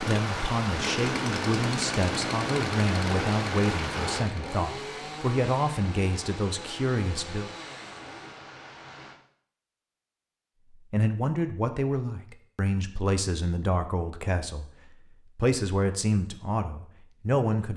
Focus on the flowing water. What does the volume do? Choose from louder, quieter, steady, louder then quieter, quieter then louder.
quieter.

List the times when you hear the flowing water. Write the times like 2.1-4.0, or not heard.
0.0-9.2.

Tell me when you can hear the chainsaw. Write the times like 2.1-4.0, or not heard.
0.0-8.4.